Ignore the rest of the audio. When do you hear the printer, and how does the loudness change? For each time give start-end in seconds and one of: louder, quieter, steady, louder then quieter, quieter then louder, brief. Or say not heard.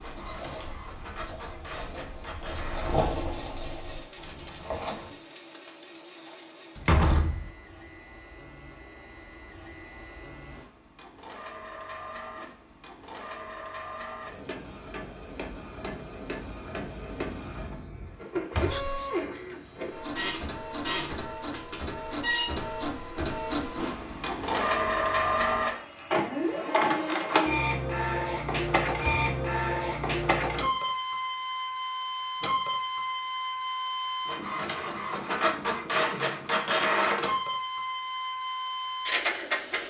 0.0-39.8 louder.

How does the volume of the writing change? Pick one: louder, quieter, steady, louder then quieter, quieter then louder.
louder then quieter.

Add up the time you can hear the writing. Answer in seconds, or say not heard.
5 s.